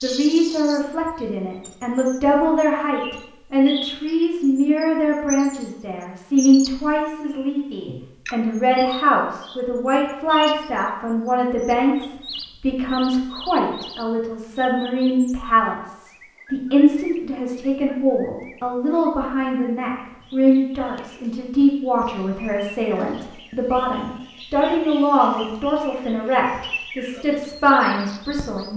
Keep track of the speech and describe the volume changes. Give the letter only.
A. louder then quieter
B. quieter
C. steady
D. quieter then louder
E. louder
C.